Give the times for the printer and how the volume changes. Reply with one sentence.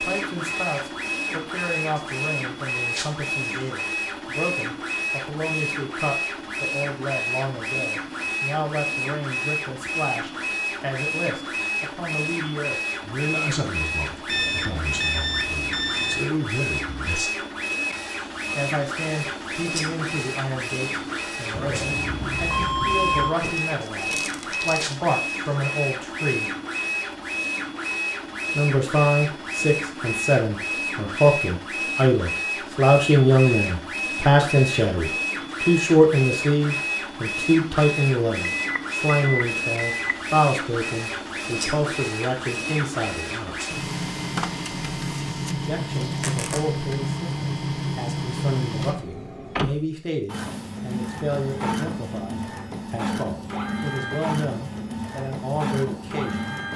The printer can be heard from 0.0 to 56.7 s, at a steady volume.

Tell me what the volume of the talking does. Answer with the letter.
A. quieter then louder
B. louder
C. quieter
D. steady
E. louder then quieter
E.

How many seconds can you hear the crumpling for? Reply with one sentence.
You can hear the crumpling for 2 seconds altogether.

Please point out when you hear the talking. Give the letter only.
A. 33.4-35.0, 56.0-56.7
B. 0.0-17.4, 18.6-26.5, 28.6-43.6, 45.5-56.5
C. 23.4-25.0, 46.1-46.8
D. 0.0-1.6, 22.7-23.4
B.